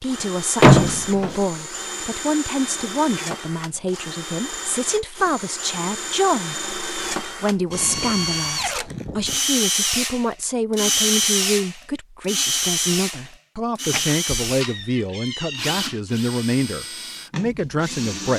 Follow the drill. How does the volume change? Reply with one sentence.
The volume of the drill goes up, then down.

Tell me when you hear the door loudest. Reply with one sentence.
The volume of the door peaks at 1 second.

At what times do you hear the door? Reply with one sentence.
The door can be heard from 0.6 to 1.4 s and from 13.8 to 15.7 s.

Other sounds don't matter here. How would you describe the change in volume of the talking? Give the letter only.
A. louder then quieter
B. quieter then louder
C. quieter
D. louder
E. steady
E.